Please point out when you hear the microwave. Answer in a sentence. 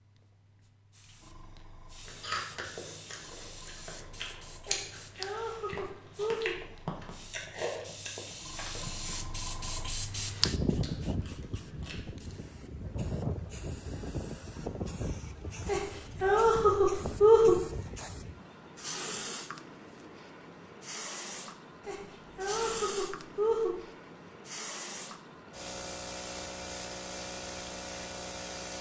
You can't hear the microwave here.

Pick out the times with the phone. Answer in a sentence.
You can't hear the phone here.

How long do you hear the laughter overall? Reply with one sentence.
The laughter can be heard for 6 seconds in total.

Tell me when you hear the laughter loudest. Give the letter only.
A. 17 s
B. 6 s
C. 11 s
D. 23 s
A.